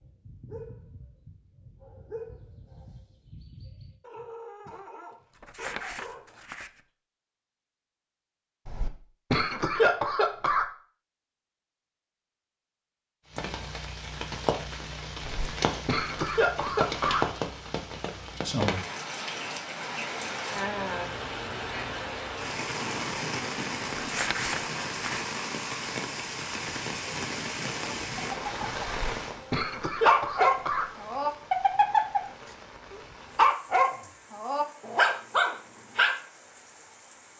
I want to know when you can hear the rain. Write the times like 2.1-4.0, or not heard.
13.2-37.3.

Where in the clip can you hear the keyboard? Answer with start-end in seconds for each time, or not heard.
not heard.